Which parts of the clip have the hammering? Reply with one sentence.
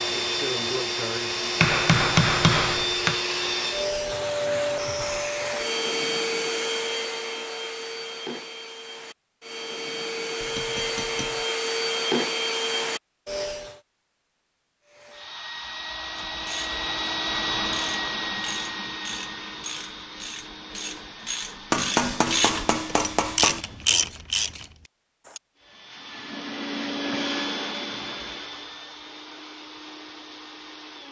You can hear the hammering from 1.6 to 3.2 s, from 10.4 to 11.4 s and from 21.7 to 23.6 s.